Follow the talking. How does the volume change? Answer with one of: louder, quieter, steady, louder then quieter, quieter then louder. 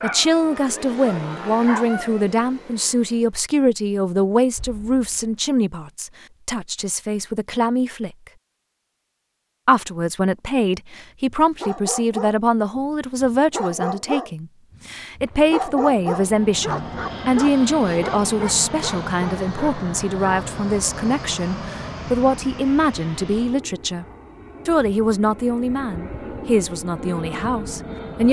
steady.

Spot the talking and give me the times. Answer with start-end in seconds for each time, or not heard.
0.0-8.2, 9.7-24.1, 24.6-28.2.